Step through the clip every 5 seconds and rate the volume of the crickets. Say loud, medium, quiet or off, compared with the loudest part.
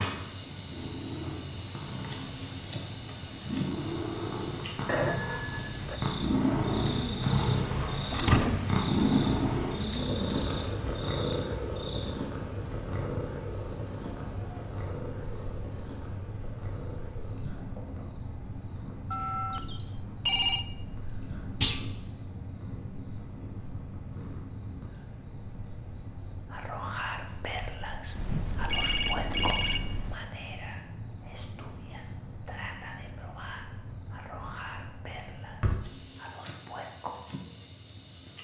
loud, loud, medium, medium, medium, medium, medium, medium.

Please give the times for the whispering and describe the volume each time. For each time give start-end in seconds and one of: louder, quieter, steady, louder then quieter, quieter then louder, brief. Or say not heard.
26.5-37.1 quieter.